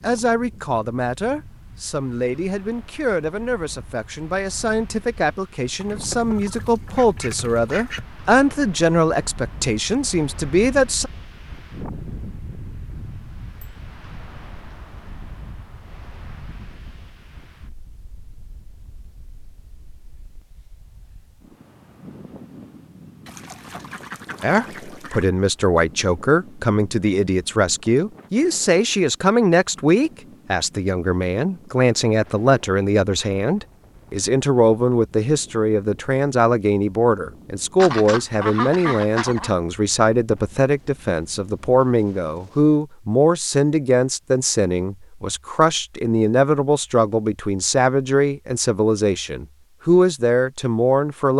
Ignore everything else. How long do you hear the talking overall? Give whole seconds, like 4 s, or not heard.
38 s.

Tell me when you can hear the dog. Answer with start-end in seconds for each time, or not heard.
not heard.